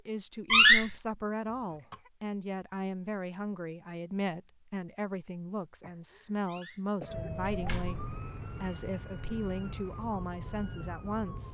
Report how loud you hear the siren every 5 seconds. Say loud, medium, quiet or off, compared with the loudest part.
off, loud, loud.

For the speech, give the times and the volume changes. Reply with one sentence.
The speech can be heard from 0.0 to 11.4 s, at a steady volume.